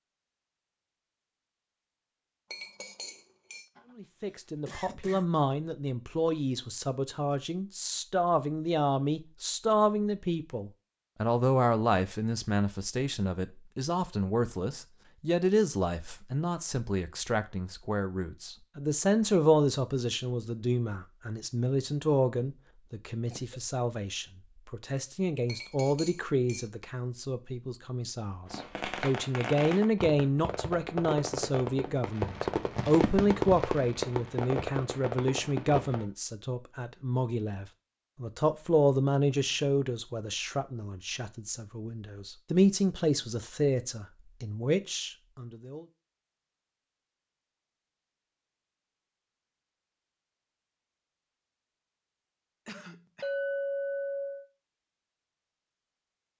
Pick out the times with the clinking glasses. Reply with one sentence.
You can hear the clinking glasses from 2.5 to 3.6 s, from 25.4 to 26.6 s and from 53.2 to 54.5 s.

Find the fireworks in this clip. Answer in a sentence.
The fireworks can be heard from 28.4 to 36.0 s.